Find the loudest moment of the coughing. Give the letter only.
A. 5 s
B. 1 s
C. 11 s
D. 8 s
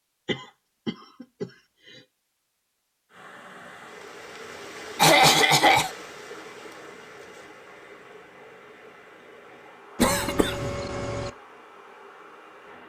A.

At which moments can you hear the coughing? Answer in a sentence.
You can hear the coughing from 0.2 to 1.5 s, from 5.0 to 5.9 s and from 10.0 to 11.3 s.